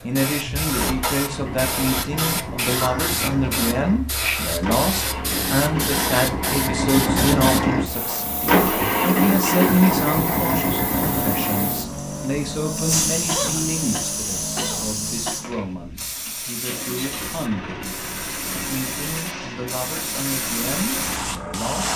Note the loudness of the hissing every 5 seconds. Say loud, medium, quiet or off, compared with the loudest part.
loud, loud, loud, medium, loud.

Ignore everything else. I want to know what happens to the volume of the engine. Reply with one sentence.
The loudness of the engine goes up, then down.